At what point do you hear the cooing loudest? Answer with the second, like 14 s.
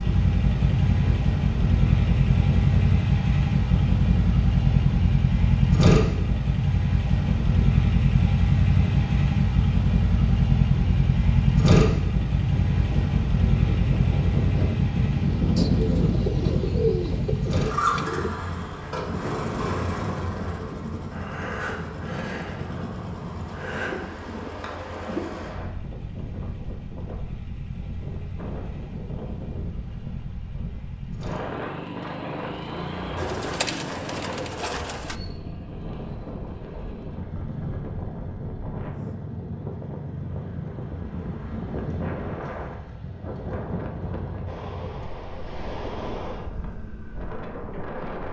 17 s.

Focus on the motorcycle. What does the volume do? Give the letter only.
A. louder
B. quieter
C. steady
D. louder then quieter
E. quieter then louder
B.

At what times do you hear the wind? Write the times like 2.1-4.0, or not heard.
0.0-48.2.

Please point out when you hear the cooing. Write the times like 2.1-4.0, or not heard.
15.6-18.3, 33.1-35.1.